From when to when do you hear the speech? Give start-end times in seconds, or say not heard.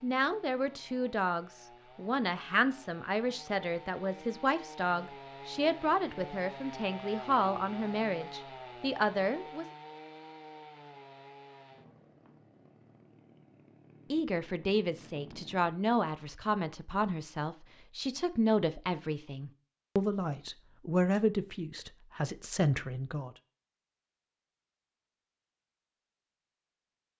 0.0-9.7, 14.1-23.3.